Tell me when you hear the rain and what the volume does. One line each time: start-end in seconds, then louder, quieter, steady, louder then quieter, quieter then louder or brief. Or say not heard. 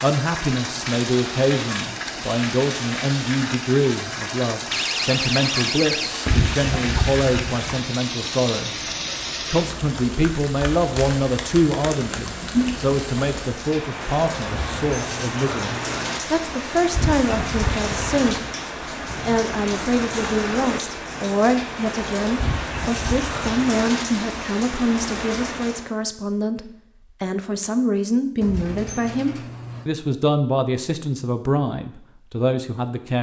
0.0-25.9 steady.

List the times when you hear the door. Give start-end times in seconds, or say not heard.
4.7-6.5, 14.4-16.2, 28.4-29.9.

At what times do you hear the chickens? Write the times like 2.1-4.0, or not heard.
6.2-7.8, 16.9-18.5, 22.4-23.8.